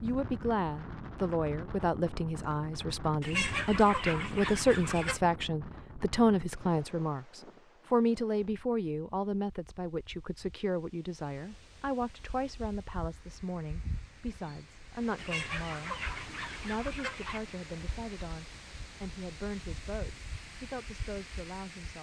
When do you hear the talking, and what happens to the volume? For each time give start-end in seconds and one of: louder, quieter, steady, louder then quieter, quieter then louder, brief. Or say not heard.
0.0-21.9 quieter.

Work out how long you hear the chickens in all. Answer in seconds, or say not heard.
4 s.